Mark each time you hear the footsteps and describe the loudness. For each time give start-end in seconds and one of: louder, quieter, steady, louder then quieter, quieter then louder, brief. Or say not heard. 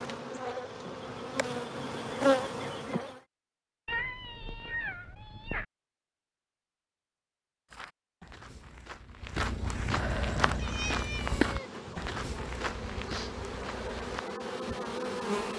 7.7-14.2 louder then quieter.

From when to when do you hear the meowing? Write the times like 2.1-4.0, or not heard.
3.9-5.7, 9.8-12.1.